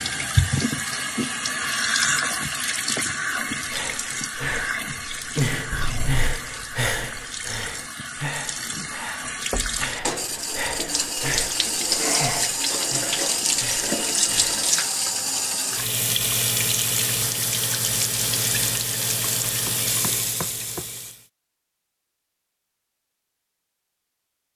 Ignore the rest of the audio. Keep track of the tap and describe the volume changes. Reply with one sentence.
The volume of the tap goes down, then up.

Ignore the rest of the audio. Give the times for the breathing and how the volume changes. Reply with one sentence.
You can hear the breathing from 3.5 to 14.7 s, getting quieter.